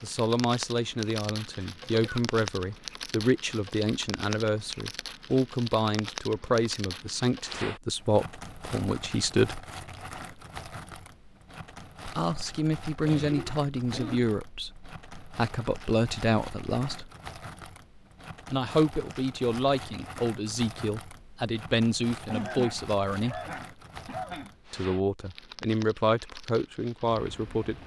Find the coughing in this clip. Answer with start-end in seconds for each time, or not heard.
1.8-2.2, 13.1-14.3, 22.3-24.5.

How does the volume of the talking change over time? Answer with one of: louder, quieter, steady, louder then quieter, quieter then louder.
steady.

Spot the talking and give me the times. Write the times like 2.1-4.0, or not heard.
0.0-9.6, 12.1-17.1, 18.5-23.4, 24.7-27.8.